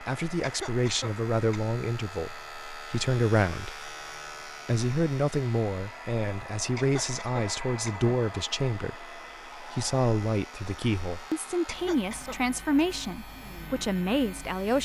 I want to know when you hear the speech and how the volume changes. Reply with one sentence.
You can hear the speech from 0.0 to 14.8 s, at a steady volume.